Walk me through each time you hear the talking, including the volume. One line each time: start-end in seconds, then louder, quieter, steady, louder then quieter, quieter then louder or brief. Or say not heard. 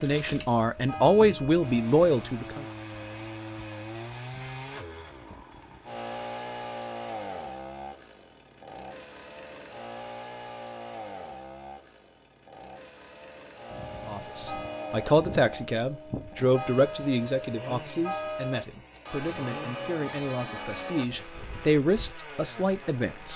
0.0-2.6 brief
14.1-23.3 quieter then louder.